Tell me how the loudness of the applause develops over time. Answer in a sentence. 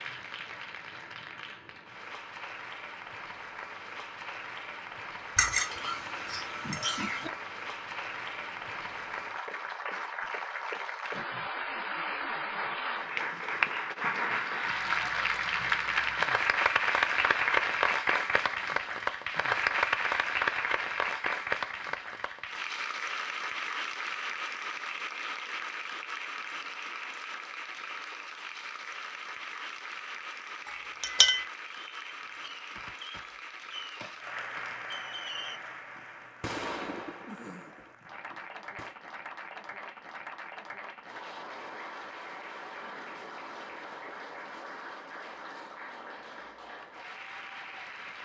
The loudness of the applause goes up, then down.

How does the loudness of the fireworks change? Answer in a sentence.
The volume of the fireworks goes up, then down.